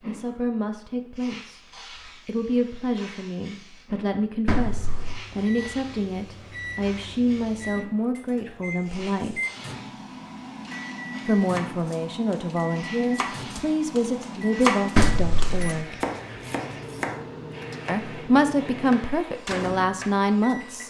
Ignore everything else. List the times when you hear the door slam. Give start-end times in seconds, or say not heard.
4.5-5.2, 14.9-15.8.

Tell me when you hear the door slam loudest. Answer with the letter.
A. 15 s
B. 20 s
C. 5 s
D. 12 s
A.